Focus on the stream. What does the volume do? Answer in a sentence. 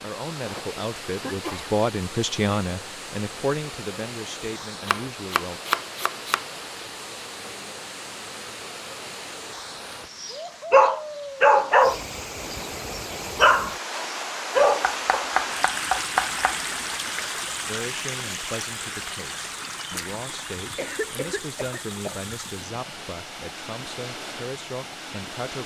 The volume of the stream goes up, then down.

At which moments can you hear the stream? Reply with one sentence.
You can hear the stream from 0.0 to 25.6 s.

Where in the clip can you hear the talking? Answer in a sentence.
The talking can be heard from 0.0 to 5.6 s and from 17.6 to 25.6 s.